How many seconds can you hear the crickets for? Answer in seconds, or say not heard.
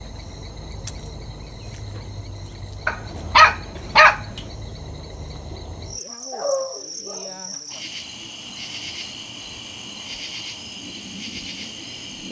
12 s.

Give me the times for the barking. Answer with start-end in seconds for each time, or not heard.
2.9-4.4, 6.3-7.3.